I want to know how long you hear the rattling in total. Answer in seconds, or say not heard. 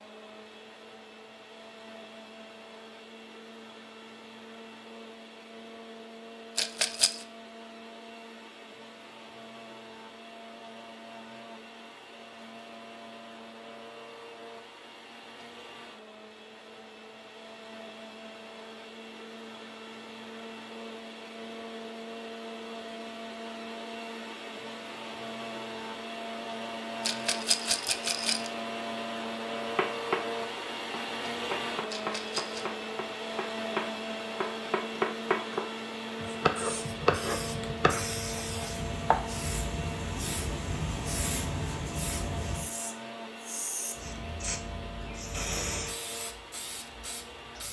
3 s.